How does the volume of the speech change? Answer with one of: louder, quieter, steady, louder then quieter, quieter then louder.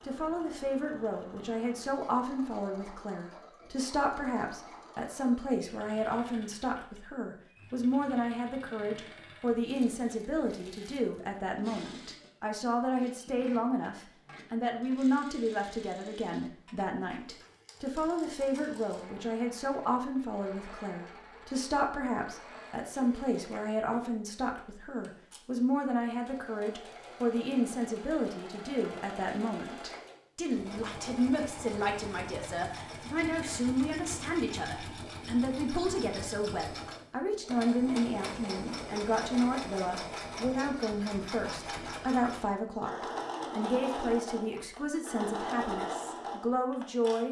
steady.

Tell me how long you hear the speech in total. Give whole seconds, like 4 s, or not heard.
47 s.